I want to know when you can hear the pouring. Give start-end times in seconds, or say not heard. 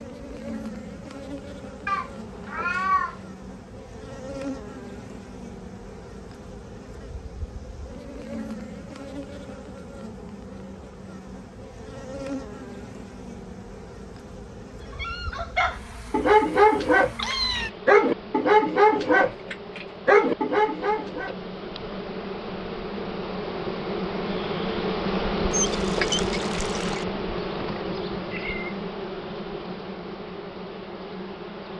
25.5-27.1.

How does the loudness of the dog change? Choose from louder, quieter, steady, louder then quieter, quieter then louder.
steady.